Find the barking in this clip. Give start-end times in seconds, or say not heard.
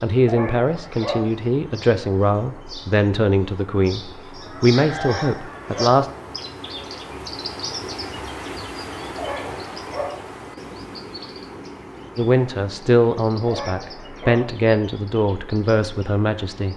0.2-1.2, 5.0-5.9, 9.2-10.1, 13.4-14.4.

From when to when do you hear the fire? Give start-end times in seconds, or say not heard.
not heard.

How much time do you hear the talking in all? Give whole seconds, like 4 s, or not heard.
11 s.